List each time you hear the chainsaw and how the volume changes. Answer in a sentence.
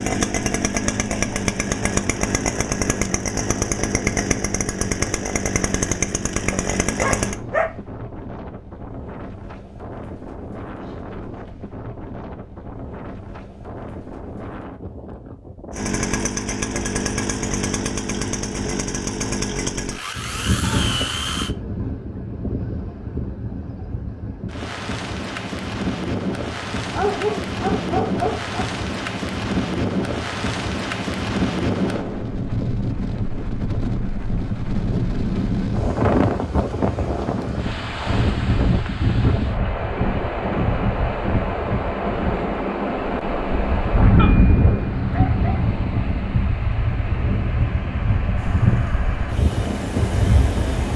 The chainsaw can be heard from 0.0 to 7.3 s, at a steady volume; from 15.7 to 21.6 s, at a steady volume; and briefly from 48.4 to 50.9 s.